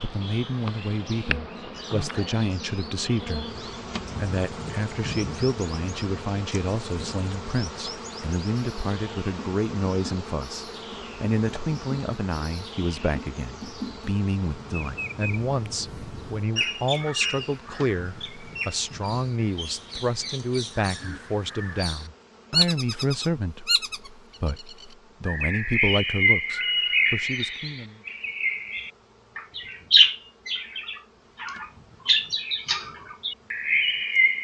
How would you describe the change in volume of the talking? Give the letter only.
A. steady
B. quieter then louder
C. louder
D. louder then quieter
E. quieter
A.